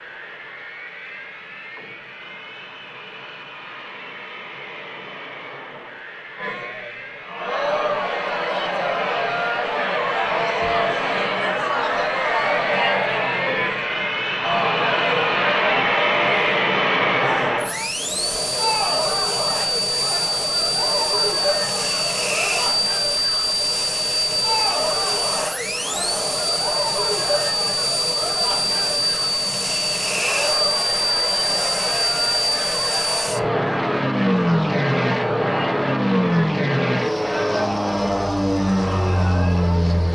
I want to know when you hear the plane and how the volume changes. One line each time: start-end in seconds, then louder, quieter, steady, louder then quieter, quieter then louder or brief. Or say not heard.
0.0-40.1 louder.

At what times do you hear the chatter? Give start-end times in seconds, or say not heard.
6.3-39.9.